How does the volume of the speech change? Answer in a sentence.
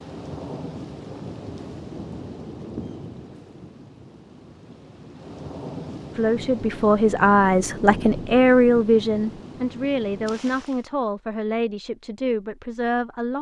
The volume of the speech goes down.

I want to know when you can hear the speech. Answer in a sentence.
You can hear the speech from 6.2 to 13.3 s.